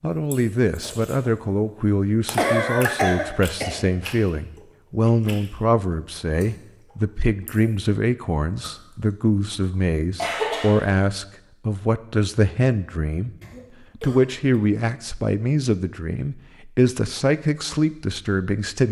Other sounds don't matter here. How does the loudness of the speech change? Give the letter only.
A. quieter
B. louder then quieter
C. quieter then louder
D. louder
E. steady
E.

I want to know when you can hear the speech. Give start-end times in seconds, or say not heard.
0.0-13.3, 13.9-18.8.